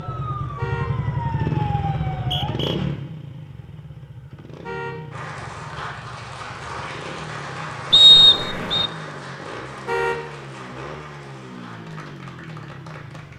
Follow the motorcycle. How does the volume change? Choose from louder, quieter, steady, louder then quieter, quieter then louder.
quieter.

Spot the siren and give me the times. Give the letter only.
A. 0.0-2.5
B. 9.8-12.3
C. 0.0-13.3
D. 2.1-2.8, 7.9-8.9
A.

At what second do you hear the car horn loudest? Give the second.
10 s.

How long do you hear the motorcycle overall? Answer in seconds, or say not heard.
13 s.